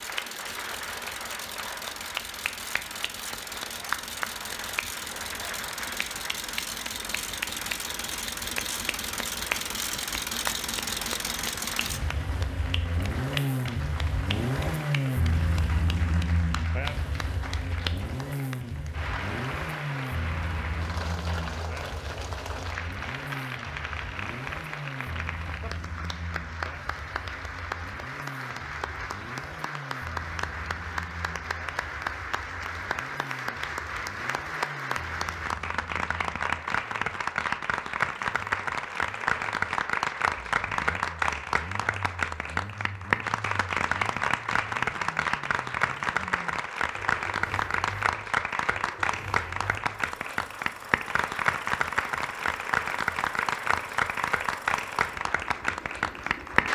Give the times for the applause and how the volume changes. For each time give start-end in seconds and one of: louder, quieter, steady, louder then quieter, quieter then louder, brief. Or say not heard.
0.0-56.7 louder.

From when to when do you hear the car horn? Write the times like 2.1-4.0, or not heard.
not heard.